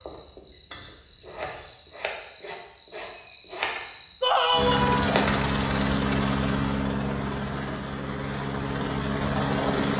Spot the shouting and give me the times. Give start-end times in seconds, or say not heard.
4.2-5.2.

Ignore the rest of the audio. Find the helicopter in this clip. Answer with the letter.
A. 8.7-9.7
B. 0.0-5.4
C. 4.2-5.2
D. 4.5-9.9
D.